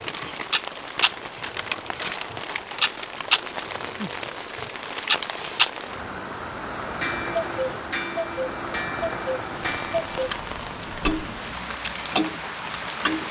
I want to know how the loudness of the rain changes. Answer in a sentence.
The loudness of the rain stays about the same.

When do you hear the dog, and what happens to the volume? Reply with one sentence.
You can't hear the dog here.